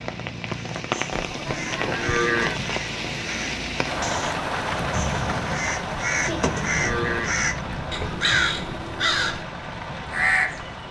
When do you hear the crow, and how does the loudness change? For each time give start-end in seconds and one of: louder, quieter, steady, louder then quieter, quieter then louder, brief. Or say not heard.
0.6-10.8 louder.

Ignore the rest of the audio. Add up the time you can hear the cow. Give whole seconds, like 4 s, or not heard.
3 s.